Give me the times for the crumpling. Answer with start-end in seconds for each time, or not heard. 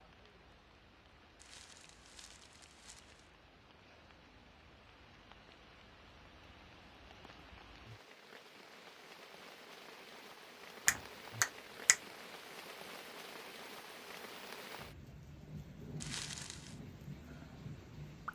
1.4-3.3, 16.0-16.8.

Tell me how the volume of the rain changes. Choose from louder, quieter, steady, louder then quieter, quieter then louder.
louder.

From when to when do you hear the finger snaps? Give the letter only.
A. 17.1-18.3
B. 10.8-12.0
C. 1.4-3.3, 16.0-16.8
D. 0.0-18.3
B.